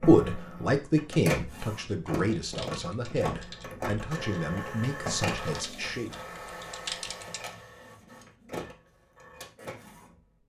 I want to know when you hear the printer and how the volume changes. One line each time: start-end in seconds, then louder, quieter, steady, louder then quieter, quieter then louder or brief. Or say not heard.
0.0-10.2 quieter.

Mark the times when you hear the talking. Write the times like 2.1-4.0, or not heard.
0.0-6.1.